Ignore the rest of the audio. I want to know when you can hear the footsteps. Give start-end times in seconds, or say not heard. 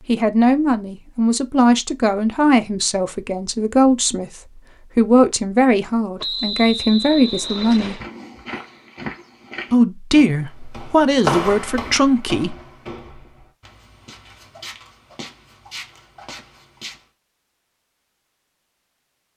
7.5-17.1.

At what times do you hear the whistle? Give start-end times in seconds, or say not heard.
6.2-8.1.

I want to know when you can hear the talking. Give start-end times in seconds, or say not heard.
0.1-8.0, 9.7-12.6.